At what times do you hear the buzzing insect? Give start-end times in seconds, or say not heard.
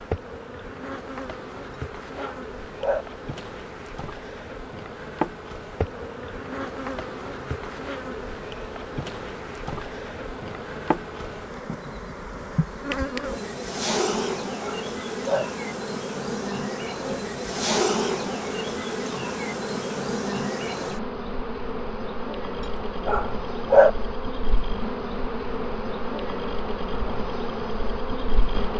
0.0-28.7.